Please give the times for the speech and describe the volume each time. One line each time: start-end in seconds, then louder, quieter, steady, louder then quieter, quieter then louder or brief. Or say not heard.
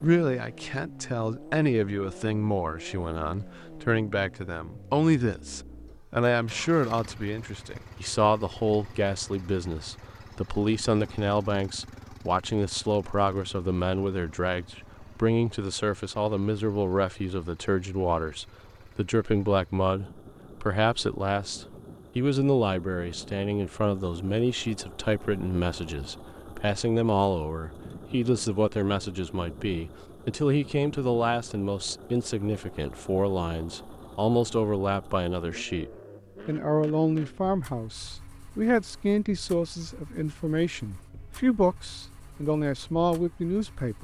0.0-43.9 steady.